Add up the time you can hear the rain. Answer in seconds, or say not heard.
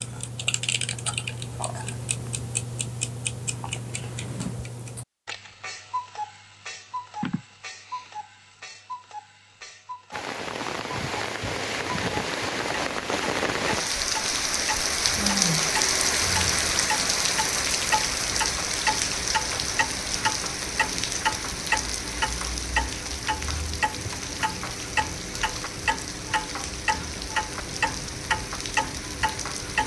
20 s.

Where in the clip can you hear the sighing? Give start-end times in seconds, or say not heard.
7.2-8.1, 15.2-15.7.